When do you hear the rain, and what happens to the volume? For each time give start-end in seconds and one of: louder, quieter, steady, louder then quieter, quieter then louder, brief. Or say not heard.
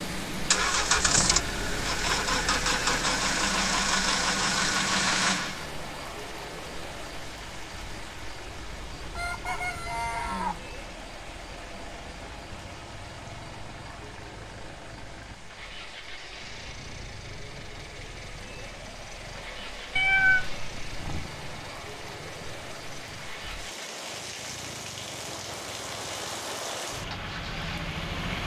0.0-28.4 quieter then louder.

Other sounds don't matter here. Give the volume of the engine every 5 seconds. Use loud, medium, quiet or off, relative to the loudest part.
loud, medium, quiet, quiet, quiet, quiet.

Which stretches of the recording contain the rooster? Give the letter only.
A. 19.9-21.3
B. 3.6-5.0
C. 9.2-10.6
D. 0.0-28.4
C.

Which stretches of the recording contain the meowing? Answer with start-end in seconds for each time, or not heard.
19.9-21.3.